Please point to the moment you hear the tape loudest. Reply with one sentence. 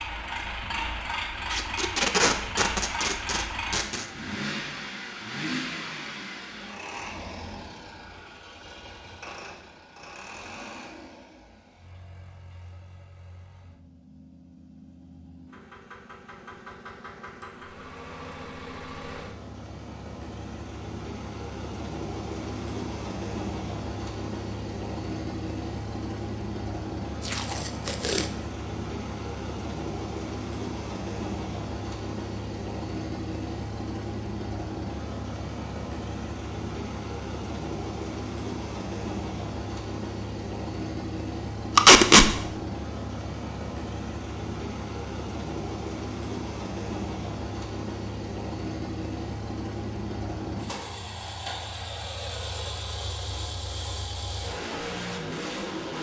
The volume of the tape peaks at 42 seconds.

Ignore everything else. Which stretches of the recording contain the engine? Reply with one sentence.
You can hear the engine from 0.0 to 55.9 s.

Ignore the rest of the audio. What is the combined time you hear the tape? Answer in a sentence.
The tape can be heard for 4 seconds in total.